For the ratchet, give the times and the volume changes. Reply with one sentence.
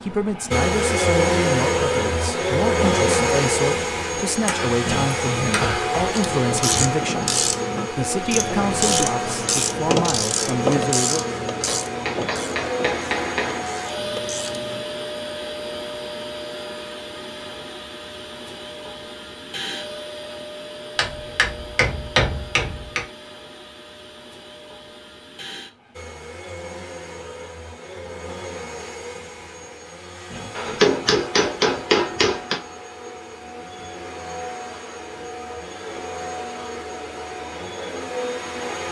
The ratchet can be heard from 6.1 to 14.8 s, getting quieter.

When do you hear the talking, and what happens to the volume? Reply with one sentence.
The talking can be heard from 0.0 to 11.2 s, at a steady volume.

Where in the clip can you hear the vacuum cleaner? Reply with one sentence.
You can hear the vacuum cleaner from 0.0 to 38.8 s.